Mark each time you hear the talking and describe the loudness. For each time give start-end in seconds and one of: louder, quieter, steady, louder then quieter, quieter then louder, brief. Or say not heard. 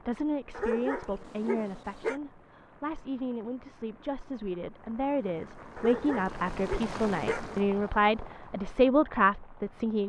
0.1-10.0 louder.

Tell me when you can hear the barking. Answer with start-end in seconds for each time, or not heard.
0.5-2.2, 5.8-7.5.